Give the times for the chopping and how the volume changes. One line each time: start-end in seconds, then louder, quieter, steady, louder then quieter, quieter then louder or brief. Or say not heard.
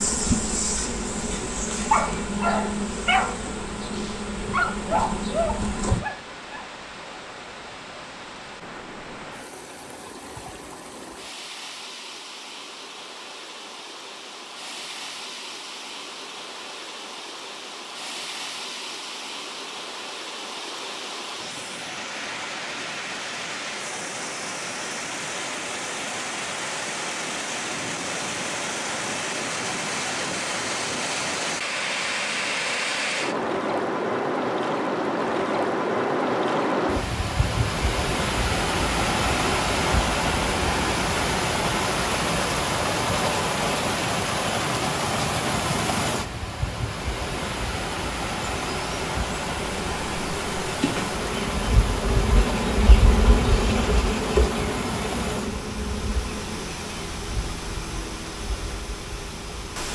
not heard.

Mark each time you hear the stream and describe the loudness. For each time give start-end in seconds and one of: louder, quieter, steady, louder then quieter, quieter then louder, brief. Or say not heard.
0.0-59.9 louder then quieter.